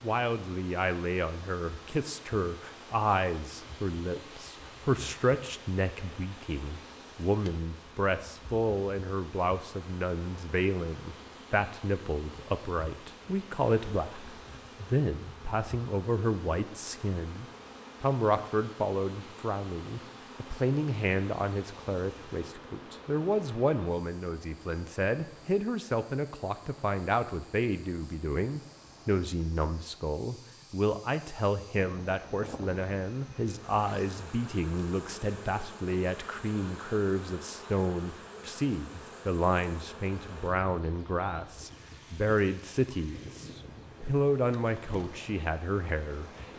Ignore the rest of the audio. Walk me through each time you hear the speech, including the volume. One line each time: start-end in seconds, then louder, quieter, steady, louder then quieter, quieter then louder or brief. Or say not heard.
0.0-46.5 steady.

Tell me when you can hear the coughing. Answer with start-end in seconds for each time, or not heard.
not heard.